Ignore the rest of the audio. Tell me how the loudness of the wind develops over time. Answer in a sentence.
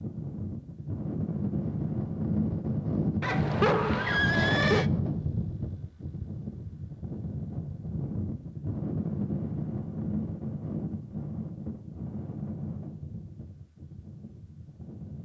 The volume of the wind goes down.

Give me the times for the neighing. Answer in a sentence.
You can hear the neighing from 3.2 to 4.9 s.